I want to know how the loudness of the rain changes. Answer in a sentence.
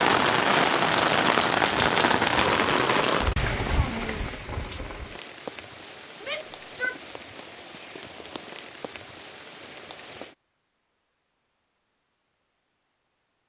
The volume of the rain goes down.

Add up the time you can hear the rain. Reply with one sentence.
You can hear the rain for 10 seconds altogether.